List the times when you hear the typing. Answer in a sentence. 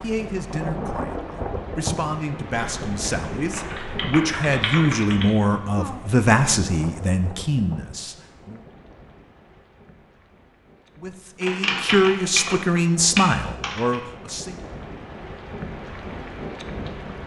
The typing can be heard from 2.5 to 5.2 s and from 11.4 to 14.0 s.